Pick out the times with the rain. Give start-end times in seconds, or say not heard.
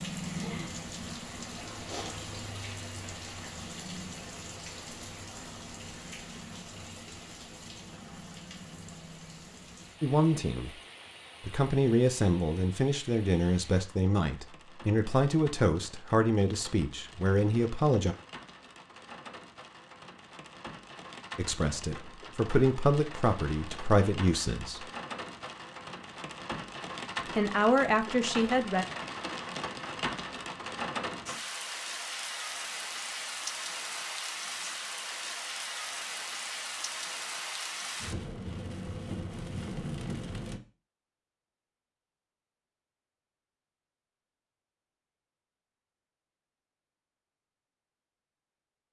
0.0-40.6.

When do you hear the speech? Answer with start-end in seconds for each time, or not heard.
10.0-10.8, 11.4-18.1, 21.4-24.9, 27.4-28.9.